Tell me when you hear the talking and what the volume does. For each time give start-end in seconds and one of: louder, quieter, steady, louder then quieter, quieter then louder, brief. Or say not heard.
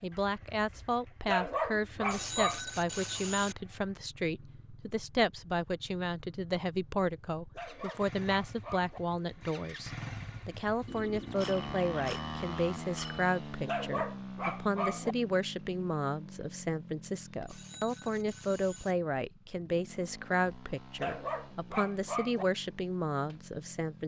0.0-24.0 steady.